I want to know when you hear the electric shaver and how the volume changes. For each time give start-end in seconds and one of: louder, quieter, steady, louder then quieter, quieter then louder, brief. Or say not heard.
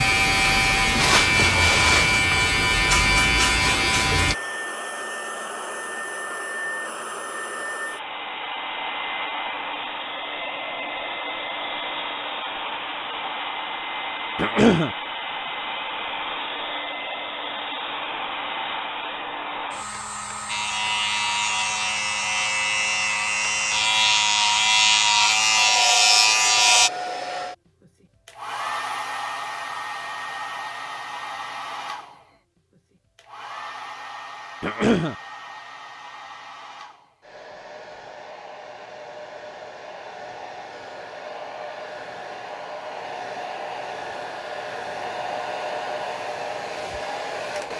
0.0-4.3 steady
20.4-26.9 louder.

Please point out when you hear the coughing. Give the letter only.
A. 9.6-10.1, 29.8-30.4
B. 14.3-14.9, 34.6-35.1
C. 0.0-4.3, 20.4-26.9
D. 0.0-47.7
B.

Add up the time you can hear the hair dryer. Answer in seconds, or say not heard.
48 s.